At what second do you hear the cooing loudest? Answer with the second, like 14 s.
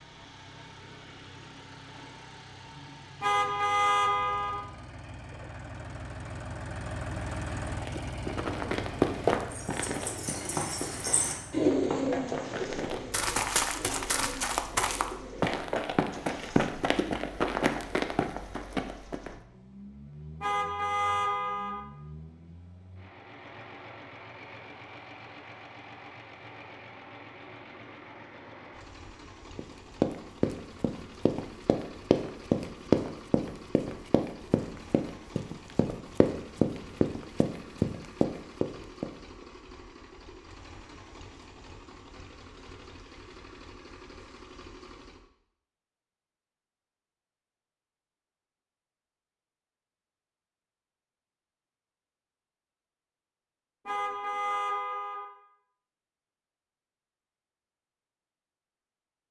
12 s.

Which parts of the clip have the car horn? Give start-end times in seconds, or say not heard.
3.2-4.7, 20.4-21.8, 53.9-55.2.